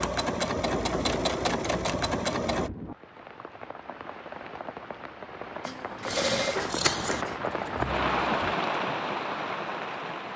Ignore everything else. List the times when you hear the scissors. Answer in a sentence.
You can hear the scissors from 6.0 to 7.2 s.